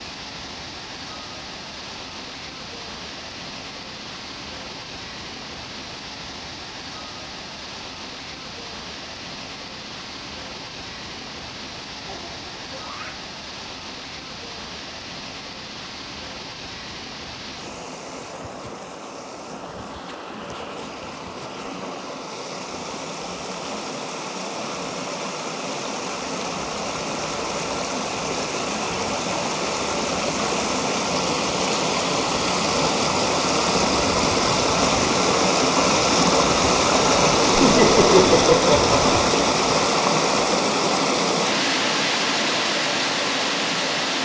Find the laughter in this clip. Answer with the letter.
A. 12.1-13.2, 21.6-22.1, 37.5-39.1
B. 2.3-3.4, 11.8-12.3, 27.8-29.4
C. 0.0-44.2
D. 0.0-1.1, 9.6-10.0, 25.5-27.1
A.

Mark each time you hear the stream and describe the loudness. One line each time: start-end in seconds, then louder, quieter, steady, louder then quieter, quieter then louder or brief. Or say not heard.
0.0-44.2 louder.